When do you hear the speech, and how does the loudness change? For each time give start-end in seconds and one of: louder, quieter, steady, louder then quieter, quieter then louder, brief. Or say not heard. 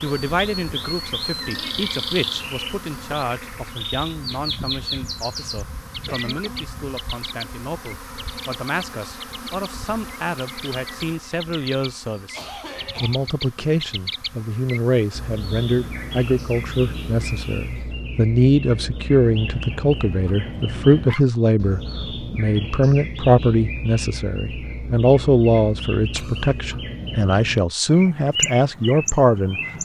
0.0-29.6 louder.